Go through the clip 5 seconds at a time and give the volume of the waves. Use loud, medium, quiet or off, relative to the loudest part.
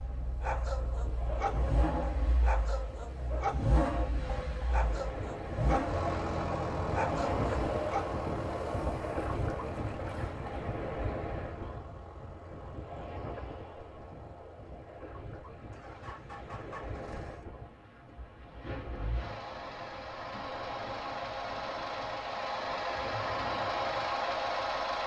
medium, loud, medium, medium, medium.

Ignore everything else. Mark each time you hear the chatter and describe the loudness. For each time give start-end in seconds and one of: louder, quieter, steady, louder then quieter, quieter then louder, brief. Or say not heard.
not heard.